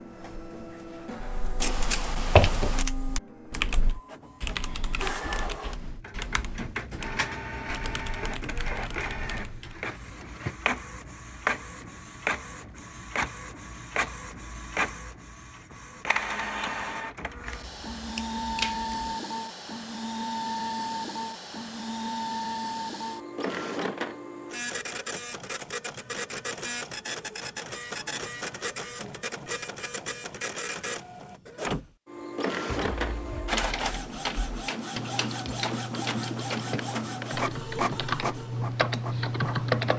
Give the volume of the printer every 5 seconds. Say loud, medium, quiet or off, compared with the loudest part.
medium, loud, loud, loud, loud, loud, loud, loud.